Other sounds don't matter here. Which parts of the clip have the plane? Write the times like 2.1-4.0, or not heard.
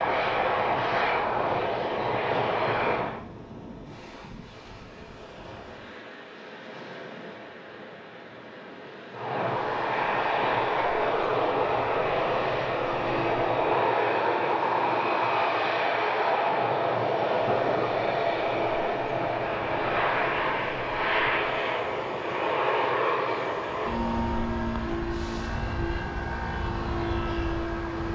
0.0-3.2, 9.1-28.0.